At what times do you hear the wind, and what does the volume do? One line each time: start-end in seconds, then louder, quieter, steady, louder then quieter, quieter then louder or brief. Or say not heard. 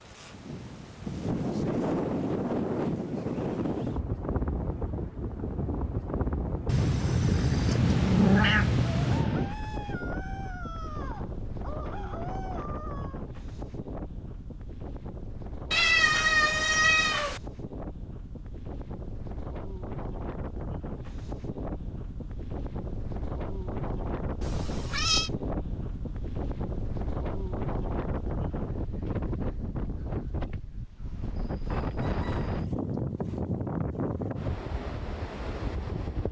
0.0-36.2 quieter then louder.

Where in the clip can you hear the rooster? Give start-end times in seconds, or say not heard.
8.9-13.2, 31.4-32.6.